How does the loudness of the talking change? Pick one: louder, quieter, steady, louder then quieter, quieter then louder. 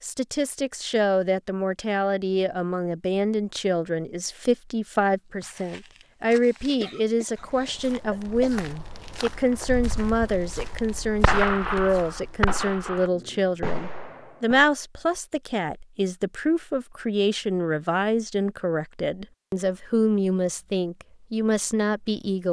steady.